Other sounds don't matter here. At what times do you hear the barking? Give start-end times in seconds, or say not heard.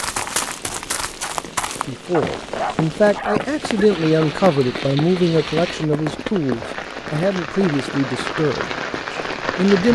2.1-3.9.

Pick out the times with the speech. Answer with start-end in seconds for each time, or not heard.
1.9-9.9.